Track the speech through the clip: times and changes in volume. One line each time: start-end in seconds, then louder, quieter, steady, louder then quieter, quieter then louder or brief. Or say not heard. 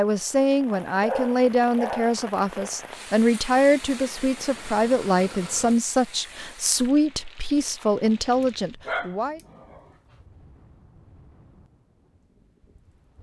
0.0-9.4 steady.